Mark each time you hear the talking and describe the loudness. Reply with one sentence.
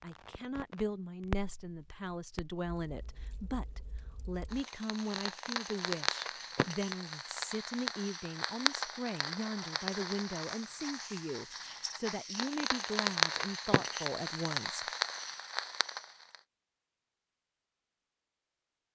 The talking can be heard from 0.0 to 14.9 s, at a steady volume.